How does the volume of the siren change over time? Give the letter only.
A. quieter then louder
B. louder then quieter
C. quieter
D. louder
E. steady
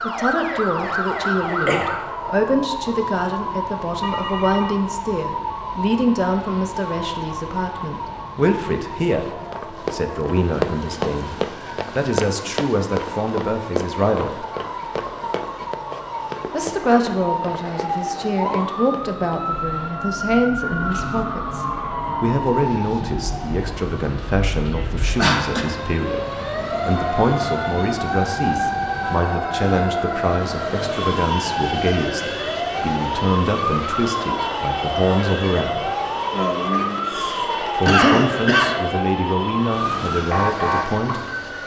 A.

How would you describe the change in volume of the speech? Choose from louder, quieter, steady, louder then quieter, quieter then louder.
steady.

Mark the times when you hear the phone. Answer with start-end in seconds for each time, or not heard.
4.0-4.8.